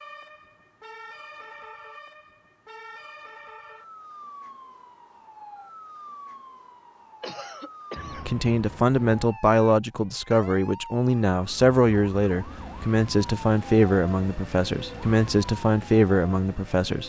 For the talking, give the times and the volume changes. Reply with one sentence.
You can hear the talking from 8.2 to 17.0 s, at a steady volume.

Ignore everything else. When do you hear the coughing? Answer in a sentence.
The coughing can be heard from 7.2 to 8.3 s.